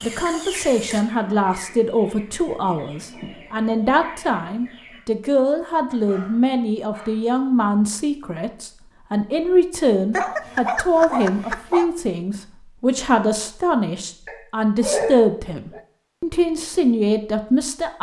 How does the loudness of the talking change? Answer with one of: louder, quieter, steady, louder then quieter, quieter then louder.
steady.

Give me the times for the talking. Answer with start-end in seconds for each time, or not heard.
0.0-17.9.